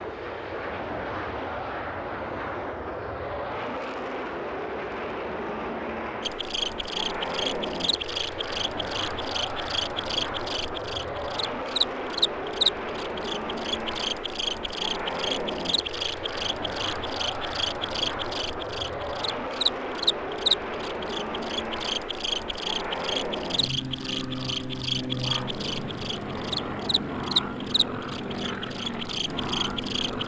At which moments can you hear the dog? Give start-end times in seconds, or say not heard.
not heard.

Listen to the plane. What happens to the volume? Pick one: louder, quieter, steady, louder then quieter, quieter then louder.
steady.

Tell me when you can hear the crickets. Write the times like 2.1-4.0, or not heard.
6.2-30.2.